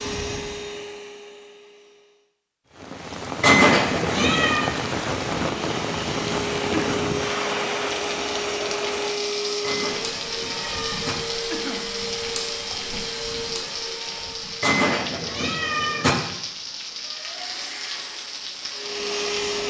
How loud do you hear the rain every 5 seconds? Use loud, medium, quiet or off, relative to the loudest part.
loud, loud, medium, medium.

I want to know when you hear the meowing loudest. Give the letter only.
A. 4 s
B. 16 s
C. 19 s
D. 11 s
A.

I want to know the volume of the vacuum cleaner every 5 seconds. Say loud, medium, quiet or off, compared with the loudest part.
medium, loud, loud, loud.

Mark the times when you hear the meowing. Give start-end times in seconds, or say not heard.
3.4-4.7, 9.6-11.2, 14.6-16.1.